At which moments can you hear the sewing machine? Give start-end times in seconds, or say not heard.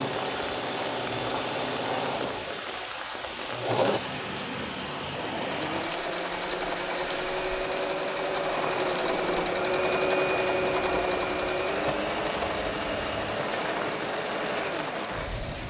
0.0-15.6.